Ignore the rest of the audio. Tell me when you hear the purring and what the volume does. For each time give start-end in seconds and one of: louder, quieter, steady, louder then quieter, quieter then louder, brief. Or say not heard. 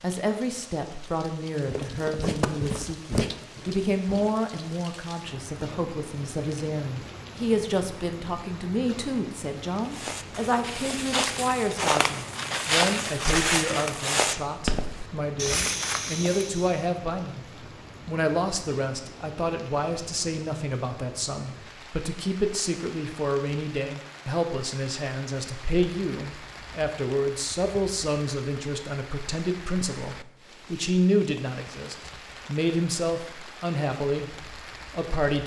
not heard.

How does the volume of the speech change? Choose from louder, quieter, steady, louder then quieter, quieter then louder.
steady.